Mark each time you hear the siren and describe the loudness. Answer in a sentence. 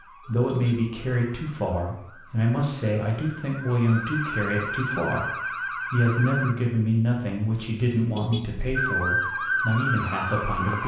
You can hear the siren from 0.0 to 6.5 s, getting louder; and briefly from 8.8 to 10.8 s.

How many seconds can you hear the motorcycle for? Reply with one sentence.
You can't hear the motorcycle here.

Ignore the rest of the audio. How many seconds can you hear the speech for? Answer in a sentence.
The speech can be heard for 11 seconds in total.